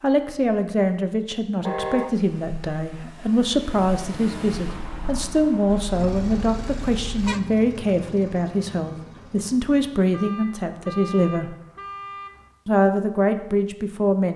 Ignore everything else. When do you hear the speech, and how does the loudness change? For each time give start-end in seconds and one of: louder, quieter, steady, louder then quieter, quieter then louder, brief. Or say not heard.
0.0-11.6 steady
12.7-14.3 brief.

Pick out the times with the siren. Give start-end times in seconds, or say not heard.
not heard.